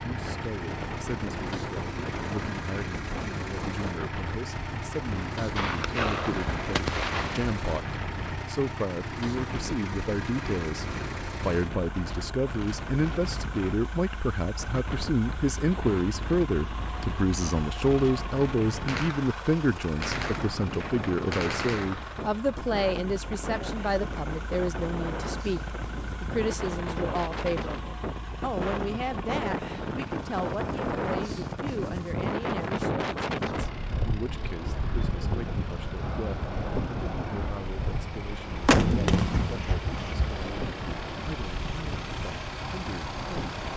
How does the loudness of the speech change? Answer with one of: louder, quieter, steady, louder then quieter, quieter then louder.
louder then quieter.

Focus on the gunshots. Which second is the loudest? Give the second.
39 s.